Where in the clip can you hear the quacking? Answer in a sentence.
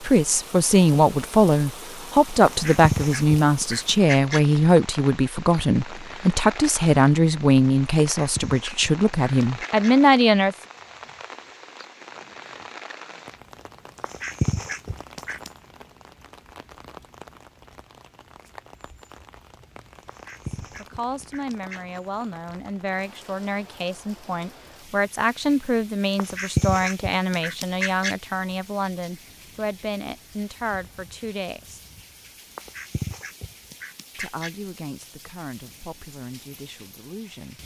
You can hear the quacking from 2.5 to 4.4 s, from 8.0 to 9.9 s, from 14.0 to 15.5 s, from 20.1 to 22.0 s, from 26.1 to 28.1 s and from 32.5 to 34.5 s.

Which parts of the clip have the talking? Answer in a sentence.
You can hear the talking from 0.0 to 10.6 s, from 20.8 to 31.8 s and from 34.1 to 37.6 s.